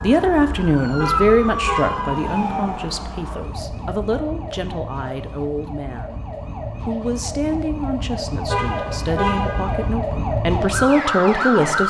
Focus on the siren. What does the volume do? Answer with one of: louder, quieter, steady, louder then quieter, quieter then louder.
quieter then louder.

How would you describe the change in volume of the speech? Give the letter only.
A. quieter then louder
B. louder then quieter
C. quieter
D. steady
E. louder
A.